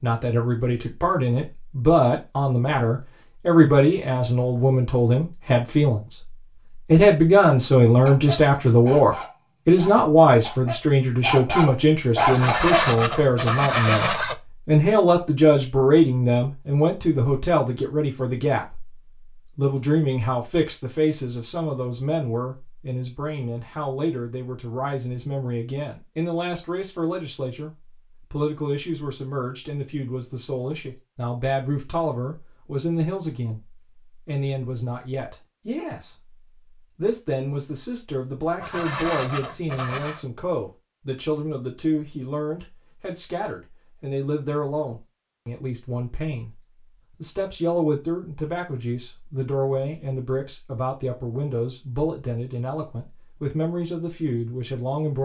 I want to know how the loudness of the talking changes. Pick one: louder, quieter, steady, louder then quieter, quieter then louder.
quieter.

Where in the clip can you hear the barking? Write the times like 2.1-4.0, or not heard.
8.1-12.8.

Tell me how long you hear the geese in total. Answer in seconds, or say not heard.
4 s.